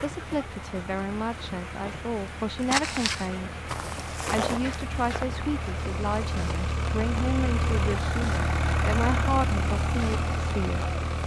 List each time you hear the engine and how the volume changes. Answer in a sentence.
You can hear the engine from 0.0 to 11.2 s, getting louder.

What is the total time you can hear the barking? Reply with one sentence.
You can't hear the barking here.